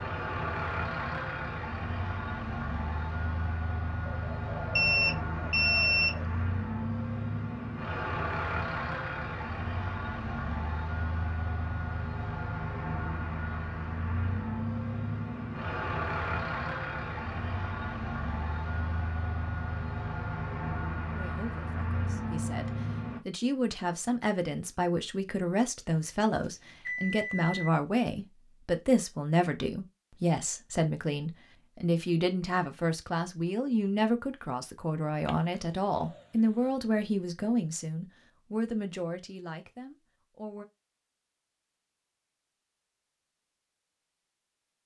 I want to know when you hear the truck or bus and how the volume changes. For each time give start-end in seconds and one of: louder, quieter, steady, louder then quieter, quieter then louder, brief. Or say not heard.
0.0-23.2 steady.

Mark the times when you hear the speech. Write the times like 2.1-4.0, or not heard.
21.1-40.6.